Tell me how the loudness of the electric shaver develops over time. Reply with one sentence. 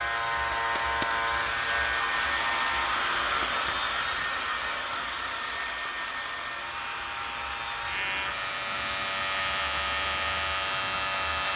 The loudness of the electric shaver goes down, then up.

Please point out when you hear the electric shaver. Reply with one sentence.
You can hear the electric shaver from 0.0 to 11.5 s.